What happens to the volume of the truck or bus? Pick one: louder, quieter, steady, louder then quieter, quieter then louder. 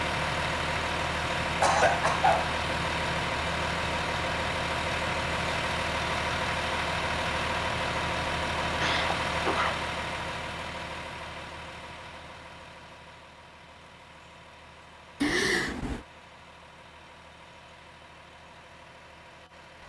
quieter.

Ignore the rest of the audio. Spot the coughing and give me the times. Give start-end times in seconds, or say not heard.
1.6-2.5, 8.8-9.8, 15.2-16.1.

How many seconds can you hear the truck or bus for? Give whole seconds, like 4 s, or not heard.
20 s.